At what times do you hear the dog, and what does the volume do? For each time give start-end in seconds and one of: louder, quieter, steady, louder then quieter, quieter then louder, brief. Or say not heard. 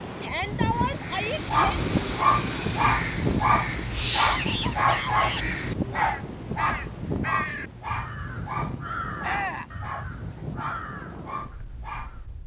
1.3-12.4 quieter.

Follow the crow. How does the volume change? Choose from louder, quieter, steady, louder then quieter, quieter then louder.
quieter.